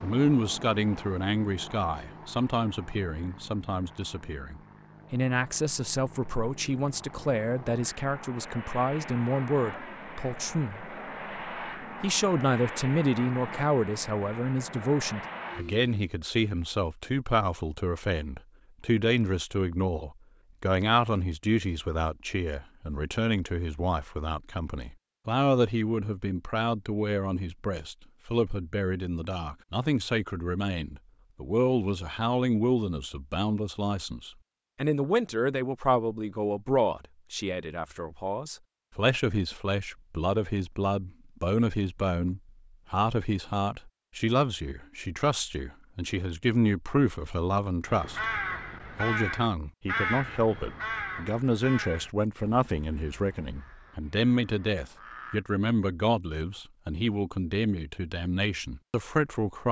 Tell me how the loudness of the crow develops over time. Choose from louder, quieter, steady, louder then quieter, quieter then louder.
quieter.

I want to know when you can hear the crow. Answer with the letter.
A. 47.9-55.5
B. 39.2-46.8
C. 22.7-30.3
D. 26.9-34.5
A.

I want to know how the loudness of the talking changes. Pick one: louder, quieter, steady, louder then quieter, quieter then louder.
steady.